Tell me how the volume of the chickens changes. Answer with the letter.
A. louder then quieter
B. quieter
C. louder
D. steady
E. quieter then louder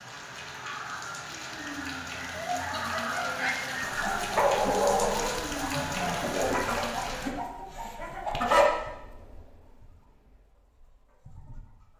A.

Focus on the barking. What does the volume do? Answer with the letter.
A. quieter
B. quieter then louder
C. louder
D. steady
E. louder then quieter
E.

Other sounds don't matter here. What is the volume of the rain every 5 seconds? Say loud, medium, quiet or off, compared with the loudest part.
loud, loud, off.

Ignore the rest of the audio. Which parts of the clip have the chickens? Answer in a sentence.
You can hear the chickens from 2.3 to 11.9 s.